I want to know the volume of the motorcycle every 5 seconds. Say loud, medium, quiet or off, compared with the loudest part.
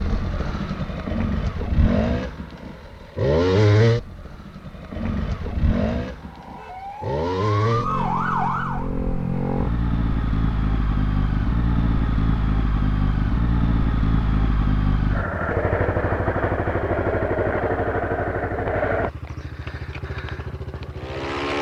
loud, loud, loud, loud, medium.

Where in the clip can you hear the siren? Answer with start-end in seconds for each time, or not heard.
6.2-8.9.